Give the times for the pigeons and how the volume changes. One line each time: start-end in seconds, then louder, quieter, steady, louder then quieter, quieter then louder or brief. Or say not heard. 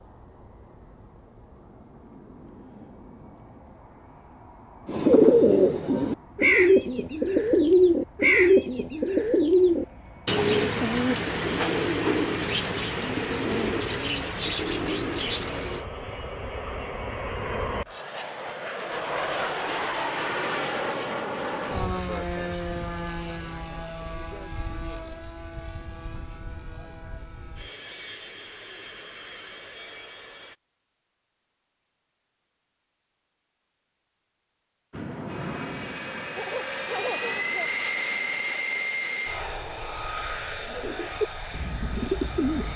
4.8-15.8 quieter
40.6-42.7 brief.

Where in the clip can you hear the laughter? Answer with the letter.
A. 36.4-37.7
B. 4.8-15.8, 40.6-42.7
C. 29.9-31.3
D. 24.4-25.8
A.